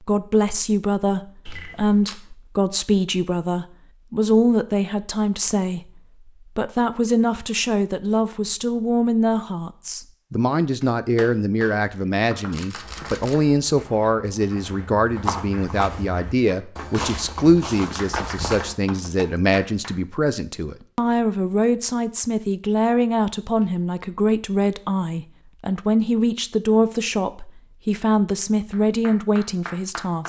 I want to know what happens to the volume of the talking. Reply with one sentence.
The volume of the talking stays about the same.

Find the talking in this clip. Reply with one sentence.
The talking can be heard from 0.0 to 30.2 s.